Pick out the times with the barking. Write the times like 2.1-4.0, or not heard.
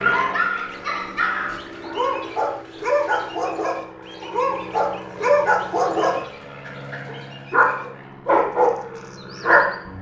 0.0-9.8.